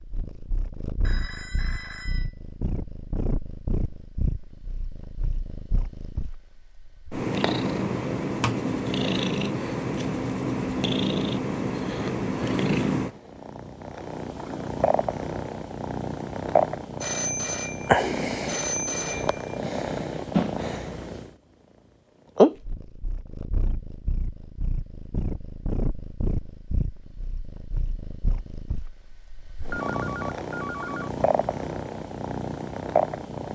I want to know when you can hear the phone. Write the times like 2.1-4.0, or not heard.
1.0-2.3, 17.0-19.6, 29.6-31.1.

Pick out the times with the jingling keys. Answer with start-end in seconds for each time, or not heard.
not heard.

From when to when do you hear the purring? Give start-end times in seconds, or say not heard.
0.0-21.3, 22.4-33.5.